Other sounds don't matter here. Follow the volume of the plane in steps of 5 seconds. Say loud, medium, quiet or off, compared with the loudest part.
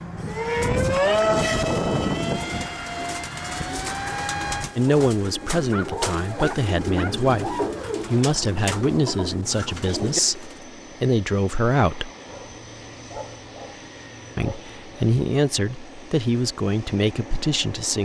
loud, quiet, quiet, quiet.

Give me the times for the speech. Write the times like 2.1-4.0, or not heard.
4.8-12.1, 14.3-17.9.